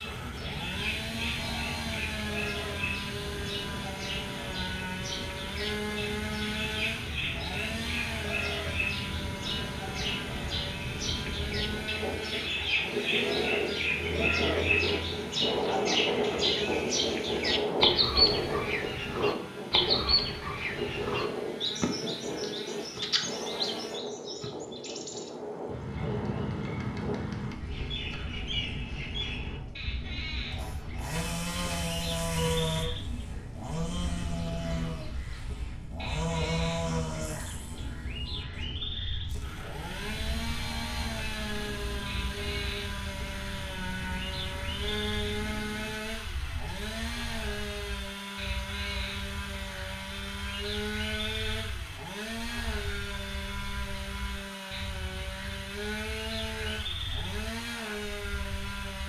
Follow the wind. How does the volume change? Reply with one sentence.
The volume of the wind goes up, then down.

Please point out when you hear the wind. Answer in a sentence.
The wind can be heard from 0.0 to 46.1 s.